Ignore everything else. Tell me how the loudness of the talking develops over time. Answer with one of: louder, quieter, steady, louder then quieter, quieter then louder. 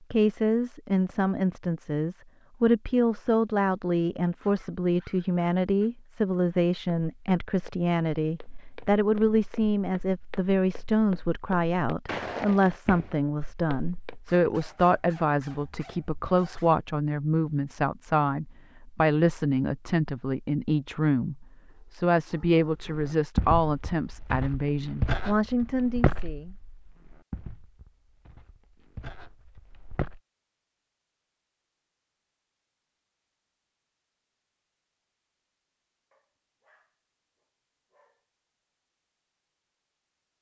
steady.